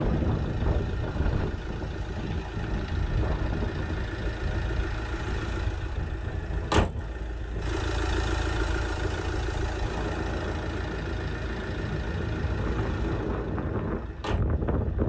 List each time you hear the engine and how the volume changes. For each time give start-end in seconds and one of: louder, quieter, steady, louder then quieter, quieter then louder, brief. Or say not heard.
0.0-15.0 louder then quieter.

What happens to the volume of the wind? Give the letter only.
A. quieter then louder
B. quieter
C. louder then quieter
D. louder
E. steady
A.